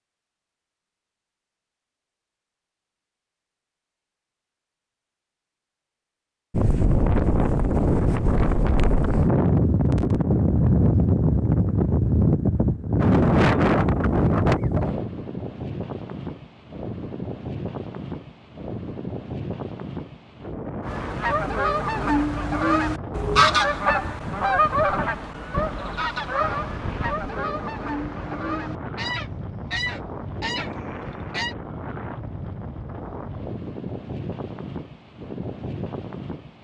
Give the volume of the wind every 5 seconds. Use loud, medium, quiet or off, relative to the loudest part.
off, loud, loud, quiet, quiet, quiet, quiet, quiet.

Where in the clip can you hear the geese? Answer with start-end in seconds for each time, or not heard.
20.8-31.6.